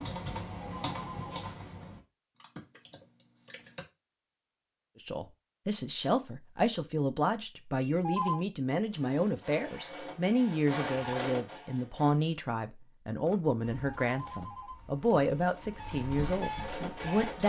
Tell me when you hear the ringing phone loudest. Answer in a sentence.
The volume of the ringing phone peaks at 8 seconds.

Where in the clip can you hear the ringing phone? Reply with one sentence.
You can hear the ringing phone from 0.6 to 1.5 s, from 7.8 to 8.4 s and from 13.8 to 15.2 s.